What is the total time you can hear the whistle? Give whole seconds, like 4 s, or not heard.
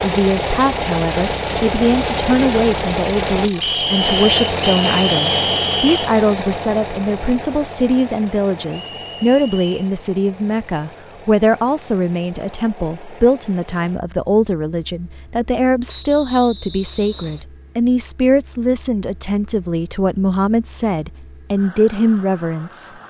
5 s.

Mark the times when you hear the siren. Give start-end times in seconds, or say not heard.
not heard.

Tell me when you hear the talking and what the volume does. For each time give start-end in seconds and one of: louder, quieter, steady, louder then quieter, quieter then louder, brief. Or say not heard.
0.0-22.9 steady.